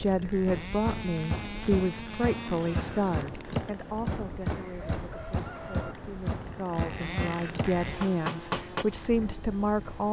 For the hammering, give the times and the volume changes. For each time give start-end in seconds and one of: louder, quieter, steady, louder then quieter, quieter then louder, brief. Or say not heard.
0.5-8.8 steady.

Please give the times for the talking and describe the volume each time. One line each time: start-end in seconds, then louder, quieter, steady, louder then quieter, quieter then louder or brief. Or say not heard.
0.0-10.0 quieter then louder.